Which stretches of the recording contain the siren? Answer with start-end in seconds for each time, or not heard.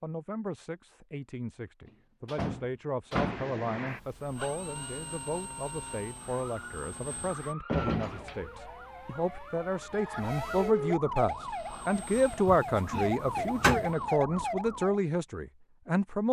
6.2-15.0.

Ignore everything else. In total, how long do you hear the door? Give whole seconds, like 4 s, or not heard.
4 s.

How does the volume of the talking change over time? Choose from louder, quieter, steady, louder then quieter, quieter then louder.
louder.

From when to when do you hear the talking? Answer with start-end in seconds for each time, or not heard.
0.0-16.2.